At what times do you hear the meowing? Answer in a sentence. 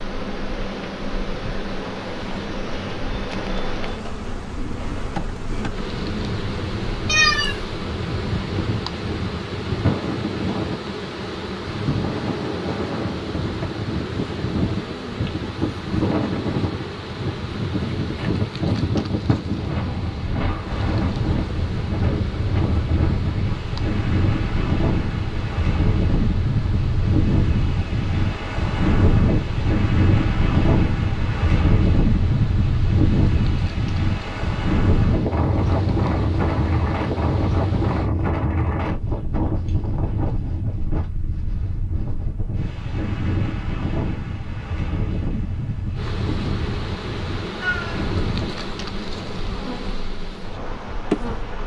You can hear the meowing from 7.0 to 7.6 s and from 47.6 to 48.1 s.